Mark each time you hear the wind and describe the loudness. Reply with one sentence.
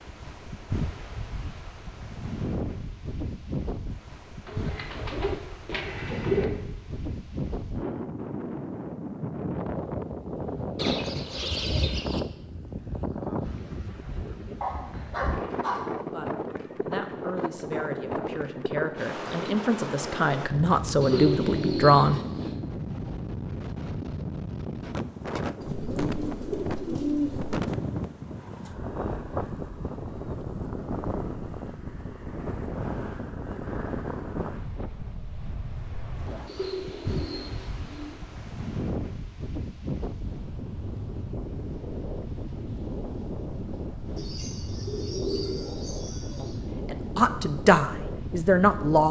The wind can be heard from 0.0 to 49.0 s, at a steady volume.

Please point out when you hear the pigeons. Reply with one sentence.
The pigeons can be heard from 4.5 to 6.5 s, from 10.8 to 12.2 s, from 21.0 to 22.6 s, from 25.6 to 27.6 s, from 36.5 to 38.1 s and from 44.1 to 46.6 s.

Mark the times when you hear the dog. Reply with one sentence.
The dog can be heard from 14.6 to 15.9 s.